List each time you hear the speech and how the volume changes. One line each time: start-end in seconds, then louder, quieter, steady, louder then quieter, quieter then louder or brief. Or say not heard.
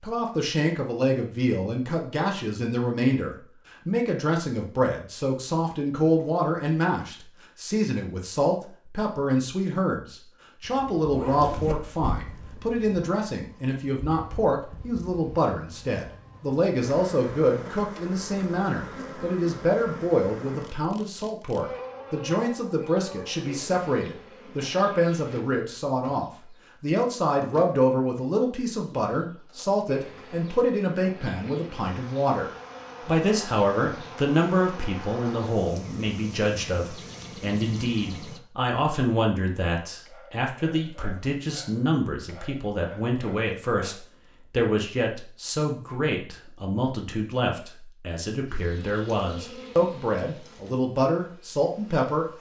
0.0-52.3 steady.